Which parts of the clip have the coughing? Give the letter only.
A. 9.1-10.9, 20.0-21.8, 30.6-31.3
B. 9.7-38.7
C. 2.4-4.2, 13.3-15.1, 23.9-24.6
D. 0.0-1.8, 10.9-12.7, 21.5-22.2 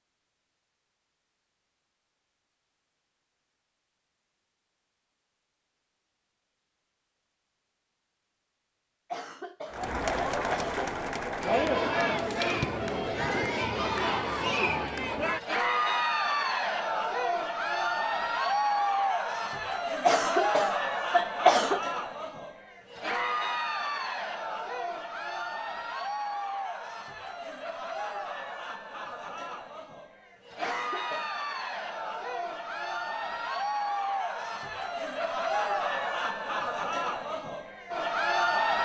A.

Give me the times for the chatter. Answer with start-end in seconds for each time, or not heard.
9.7-38.7.